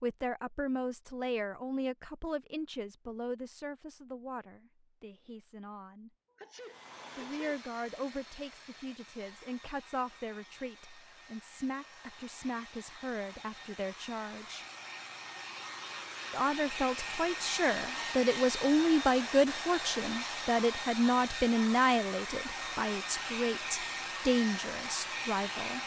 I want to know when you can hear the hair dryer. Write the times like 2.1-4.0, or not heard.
6.5-25.8.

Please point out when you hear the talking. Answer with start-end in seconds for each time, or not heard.
0.0-6.1, 7.2-14.7, 16.3-25.8.